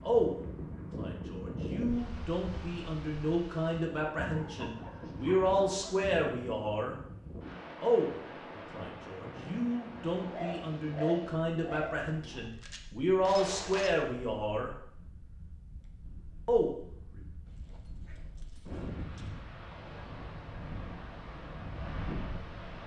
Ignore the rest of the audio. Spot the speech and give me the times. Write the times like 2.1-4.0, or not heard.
0.0-7.0, 7.8-14.7, 16.4-17.2.